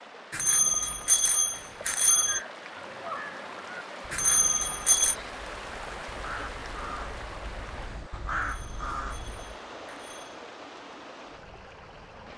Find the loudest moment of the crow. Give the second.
8 s.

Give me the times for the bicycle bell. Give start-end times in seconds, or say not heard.
0.3-2.4, 4.1-5.2, 8.4-10.4.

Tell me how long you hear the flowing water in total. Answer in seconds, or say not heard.
12 s.